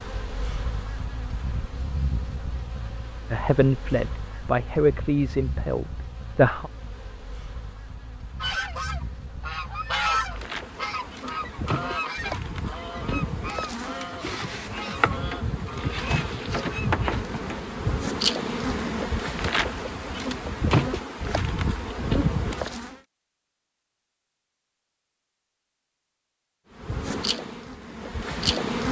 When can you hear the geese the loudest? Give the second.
10 s.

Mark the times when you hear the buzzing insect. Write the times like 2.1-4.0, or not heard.
0.0-23.0, 26.8-28.8.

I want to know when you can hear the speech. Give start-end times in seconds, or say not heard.
3.3-6.7.